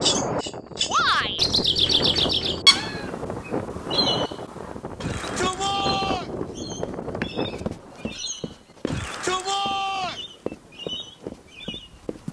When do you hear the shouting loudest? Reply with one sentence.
The volume of the shouting peaks at 1 second.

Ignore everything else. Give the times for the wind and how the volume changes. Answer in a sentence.
The wind can be heard from 0.0 to 12.2 s, getting quieter.